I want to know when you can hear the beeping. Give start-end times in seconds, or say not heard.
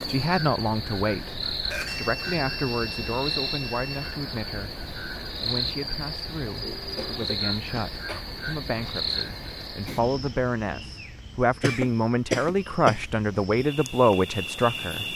1.9-4.2.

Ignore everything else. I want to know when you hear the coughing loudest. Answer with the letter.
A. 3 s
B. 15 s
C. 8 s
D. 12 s
D.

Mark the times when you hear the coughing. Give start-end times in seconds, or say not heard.
1.7-2.2, 6.6-8.2, 11.6-13.1.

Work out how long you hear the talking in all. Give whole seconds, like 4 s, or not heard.
15 s.